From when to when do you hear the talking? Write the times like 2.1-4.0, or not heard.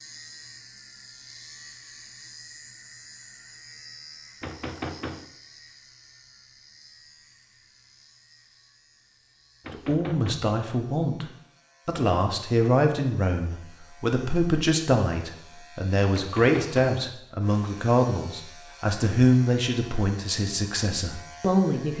9.7-11.2, 11.8-21.9.